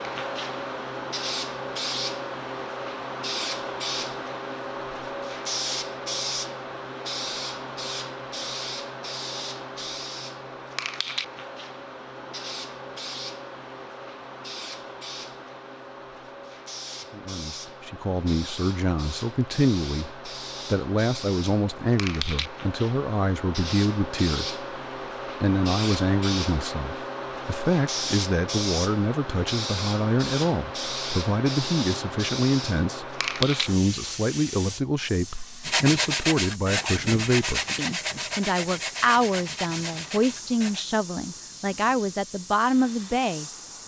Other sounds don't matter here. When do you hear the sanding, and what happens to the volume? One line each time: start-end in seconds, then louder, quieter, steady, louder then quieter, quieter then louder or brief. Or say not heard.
35.6-40.9 quieter.